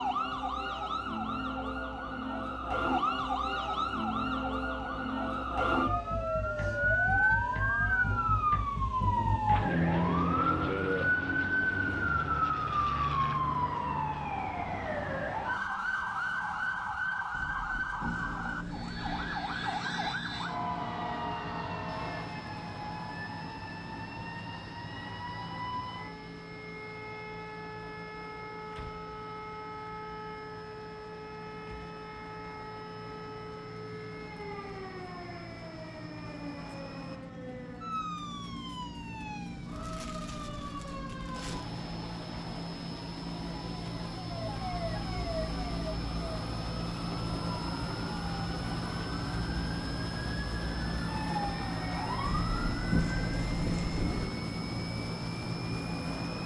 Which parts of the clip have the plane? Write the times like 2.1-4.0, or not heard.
9.5-13.4, 18.0-56.4.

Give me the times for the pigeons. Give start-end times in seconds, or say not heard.
17.3-19.4, 52.2-54.2.